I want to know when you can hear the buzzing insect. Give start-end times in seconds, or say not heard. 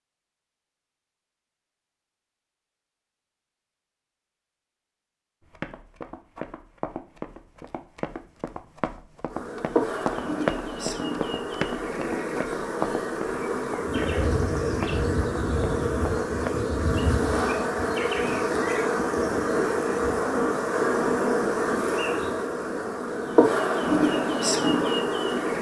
9.3-25.5.